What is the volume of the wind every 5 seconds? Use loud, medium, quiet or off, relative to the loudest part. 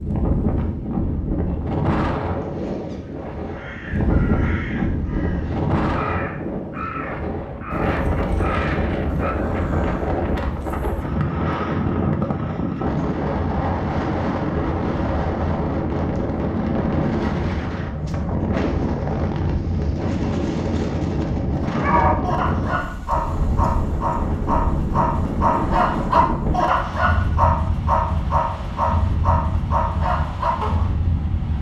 loud, loud, loud, loud, loud, loud, medium.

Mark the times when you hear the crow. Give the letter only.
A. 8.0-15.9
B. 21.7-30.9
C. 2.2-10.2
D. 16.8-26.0
C.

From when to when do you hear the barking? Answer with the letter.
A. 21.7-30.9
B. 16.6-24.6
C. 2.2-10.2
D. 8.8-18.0
A.